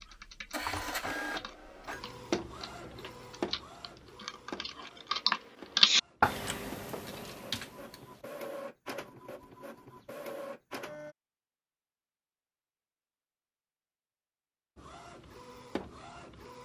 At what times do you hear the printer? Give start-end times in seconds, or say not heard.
0.1-11.2, 14.8-16.5.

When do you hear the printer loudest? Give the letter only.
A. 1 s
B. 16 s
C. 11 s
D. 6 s
A.